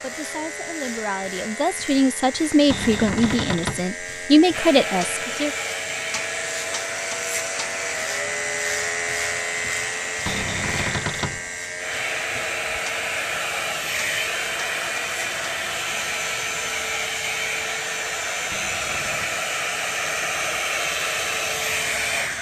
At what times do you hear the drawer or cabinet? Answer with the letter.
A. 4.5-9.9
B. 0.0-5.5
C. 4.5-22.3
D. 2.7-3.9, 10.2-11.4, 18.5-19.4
D.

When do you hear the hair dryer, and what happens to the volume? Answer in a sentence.
You can hear the hair dryer from 4.5 to 22.3 s, getting louder.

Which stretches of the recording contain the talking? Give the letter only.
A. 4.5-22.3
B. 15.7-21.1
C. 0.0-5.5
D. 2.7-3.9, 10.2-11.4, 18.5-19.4
C.